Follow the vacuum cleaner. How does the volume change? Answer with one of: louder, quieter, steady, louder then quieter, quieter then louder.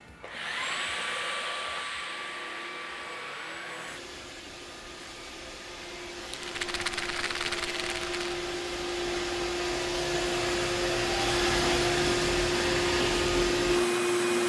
quieter then louder.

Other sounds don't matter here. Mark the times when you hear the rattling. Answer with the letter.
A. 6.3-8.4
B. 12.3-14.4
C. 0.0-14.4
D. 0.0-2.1
A.